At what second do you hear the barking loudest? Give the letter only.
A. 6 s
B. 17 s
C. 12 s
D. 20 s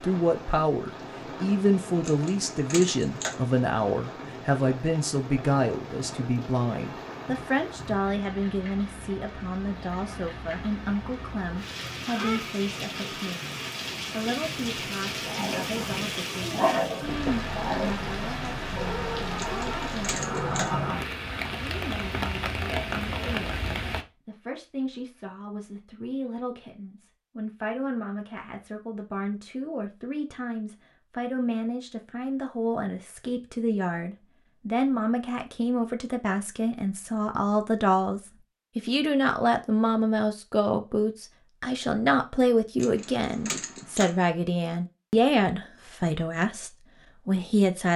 B.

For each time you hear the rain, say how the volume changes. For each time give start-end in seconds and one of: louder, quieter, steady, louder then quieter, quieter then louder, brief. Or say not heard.
0.0-24.1 louder.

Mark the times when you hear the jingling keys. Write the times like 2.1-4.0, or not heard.
2.0-3.5, 19.4-20.8, 42.8-44.2.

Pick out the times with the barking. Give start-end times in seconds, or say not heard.
15.2-20.6.